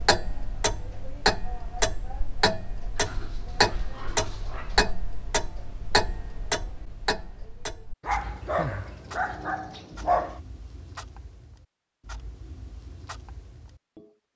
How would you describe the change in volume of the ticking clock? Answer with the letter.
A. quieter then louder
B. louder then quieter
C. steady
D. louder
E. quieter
E.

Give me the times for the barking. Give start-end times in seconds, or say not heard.
3.0-5.0, 8.0-10.4.